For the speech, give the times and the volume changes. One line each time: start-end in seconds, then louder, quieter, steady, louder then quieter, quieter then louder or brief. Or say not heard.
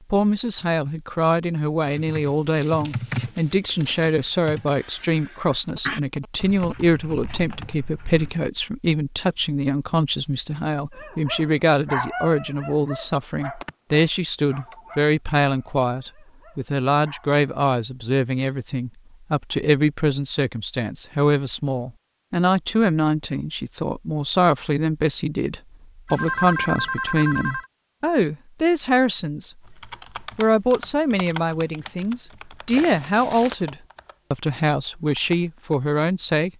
0.1-36.5 steady.